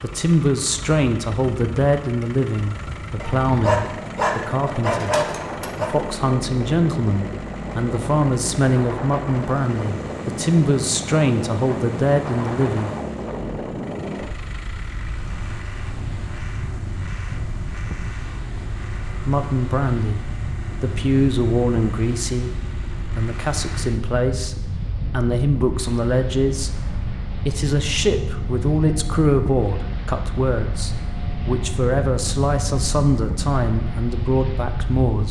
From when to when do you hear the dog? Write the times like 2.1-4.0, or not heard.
3.2-5.9.